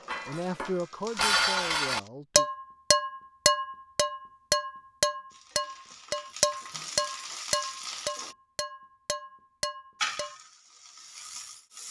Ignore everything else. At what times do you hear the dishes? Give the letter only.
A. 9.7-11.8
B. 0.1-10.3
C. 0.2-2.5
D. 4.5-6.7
B.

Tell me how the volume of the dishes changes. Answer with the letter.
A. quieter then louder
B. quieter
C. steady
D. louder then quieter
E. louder
B.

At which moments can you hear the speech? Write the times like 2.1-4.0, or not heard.
0.2-2.5.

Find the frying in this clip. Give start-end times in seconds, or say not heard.
0.0-2.1, 5.3-8.3, 9.9-11.8.